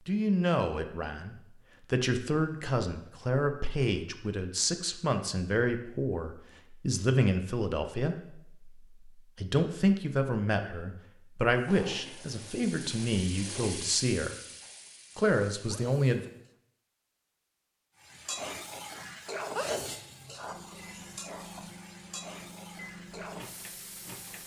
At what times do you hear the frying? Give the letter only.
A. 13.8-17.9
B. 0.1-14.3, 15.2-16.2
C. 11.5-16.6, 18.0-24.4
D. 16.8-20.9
C.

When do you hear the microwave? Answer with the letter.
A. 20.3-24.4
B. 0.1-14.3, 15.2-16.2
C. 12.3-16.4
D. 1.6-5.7
A.